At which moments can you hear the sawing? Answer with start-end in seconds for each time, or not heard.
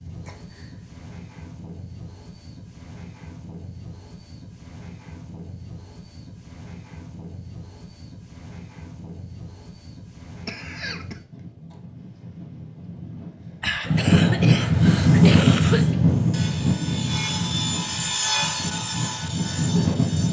14.7-20.2.